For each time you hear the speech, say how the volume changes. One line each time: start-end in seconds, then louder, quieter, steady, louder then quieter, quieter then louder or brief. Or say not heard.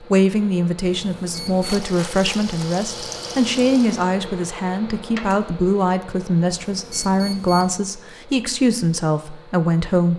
0.0-10.1 steady.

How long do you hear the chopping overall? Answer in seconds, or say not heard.
not heard.